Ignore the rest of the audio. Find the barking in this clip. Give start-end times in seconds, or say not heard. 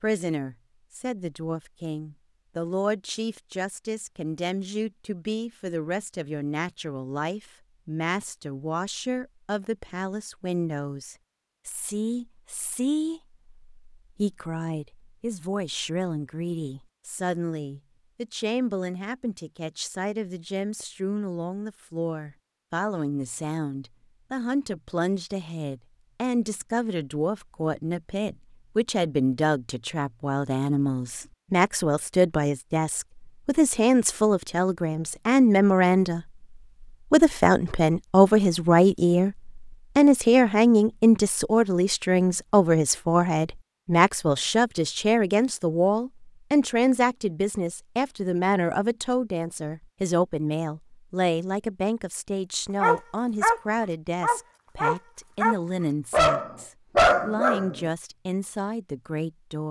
52.8-57.8.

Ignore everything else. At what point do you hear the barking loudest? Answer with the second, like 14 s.
57 s.